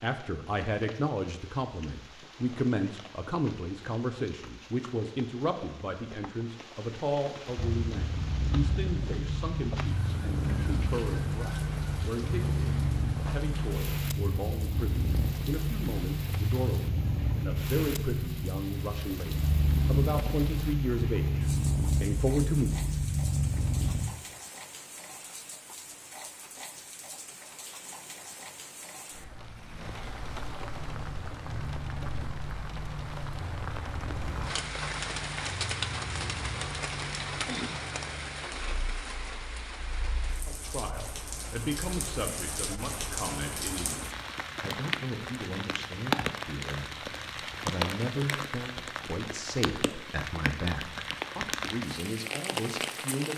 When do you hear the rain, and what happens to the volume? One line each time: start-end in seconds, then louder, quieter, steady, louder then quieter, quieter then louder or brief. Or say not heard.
0.0-53.3 louder.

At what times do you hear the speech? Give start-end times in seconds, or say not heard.
0.0-22.7, 40.5-53.3.